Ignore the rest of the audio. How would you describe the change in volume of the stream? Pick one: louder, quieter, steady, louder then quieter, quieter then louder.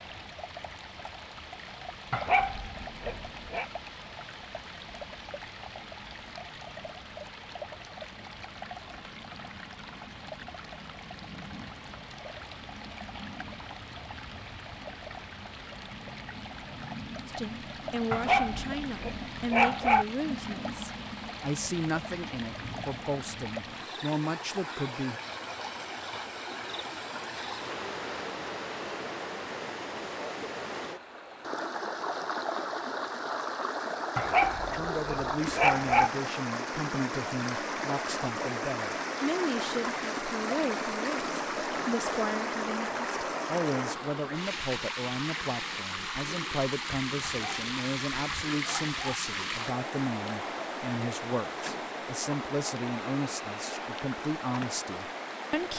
louder.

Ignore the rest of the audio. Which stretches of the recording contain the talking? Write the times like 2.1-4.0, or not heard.
17.2-25.2, 34.6-55.7.